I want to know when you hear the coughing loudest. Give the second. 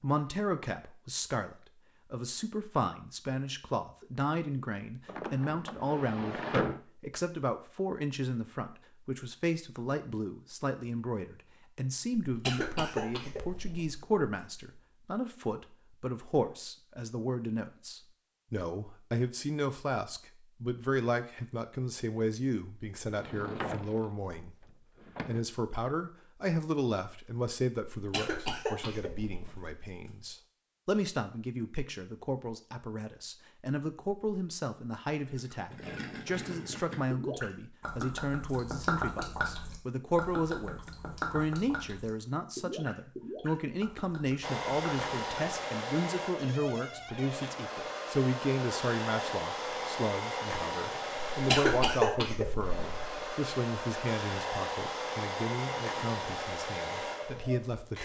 52 s.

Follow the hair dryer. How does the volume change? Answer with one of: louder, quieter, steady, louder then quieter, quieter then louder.
steady.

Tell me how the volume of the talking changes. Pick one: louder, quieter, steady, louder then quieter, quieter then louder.
steady.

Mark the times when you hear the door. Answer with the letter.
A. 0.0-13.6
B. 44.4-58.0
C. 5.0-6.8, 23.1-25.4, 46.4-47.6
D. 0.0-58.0
C.